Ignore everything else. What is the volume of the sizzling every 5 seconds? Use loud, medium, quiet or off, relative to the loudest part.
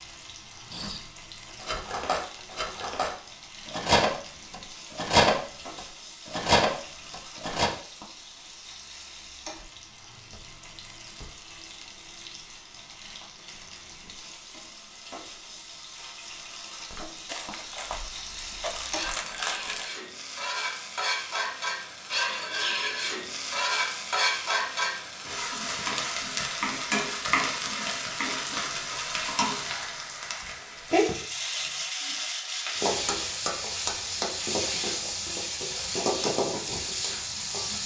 quiet, quiet, quiet, medium, loud, loud, loud, loud.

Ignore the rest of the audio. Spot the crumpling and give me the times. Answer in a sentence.
The crumpling can be heard from 17.2 to 19.9 s.